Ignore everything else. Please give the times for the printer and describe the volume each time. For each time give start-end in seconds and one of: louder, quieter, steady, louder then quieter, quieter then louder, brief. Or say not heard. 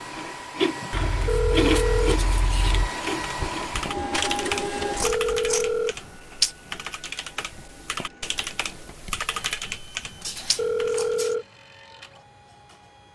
0.0-13.1 quieter.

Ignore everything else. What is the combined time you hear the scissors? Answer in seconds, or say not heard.
4 s.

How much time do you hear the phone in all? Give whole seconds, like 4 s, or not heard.
3 s.